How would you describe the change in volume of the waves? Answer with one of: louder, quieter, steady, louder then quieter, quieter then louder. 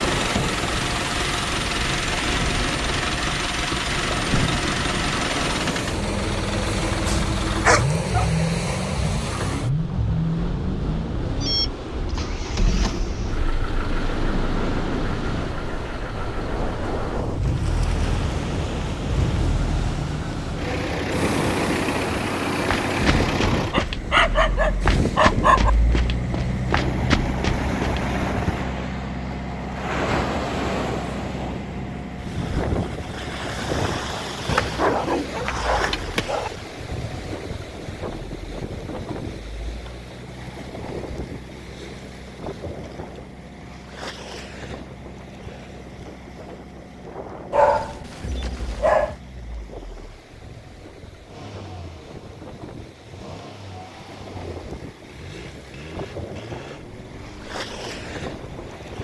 quieter.